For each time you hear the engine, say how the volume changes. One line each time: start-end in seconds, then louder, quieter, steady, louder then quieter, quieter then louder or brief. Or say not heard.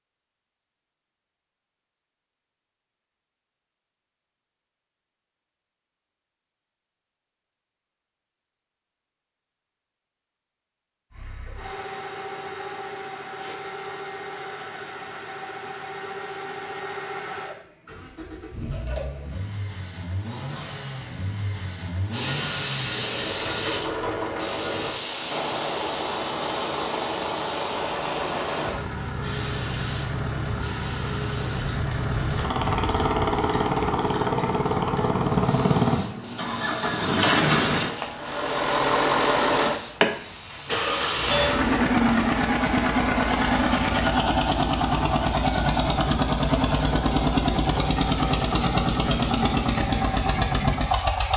11.1-51.3 louder.